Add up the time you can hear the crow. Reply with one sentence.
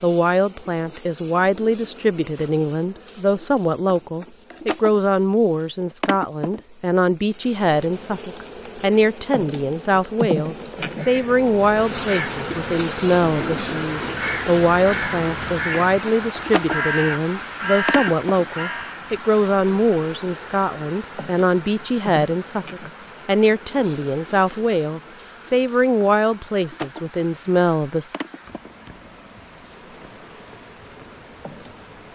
You can hear the crow for 8 seconds altogether.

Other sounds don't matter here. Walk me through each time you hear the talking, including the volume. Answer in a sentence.
The talking can be heard from 0.0 to 28.1 s, at a steady volume.